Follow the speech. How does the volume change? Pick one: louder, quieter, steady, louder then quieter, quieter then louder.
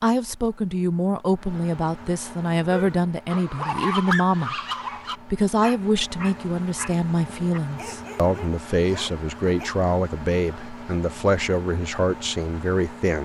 steady.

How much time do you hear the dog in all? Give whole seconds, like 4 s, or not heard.
7 s.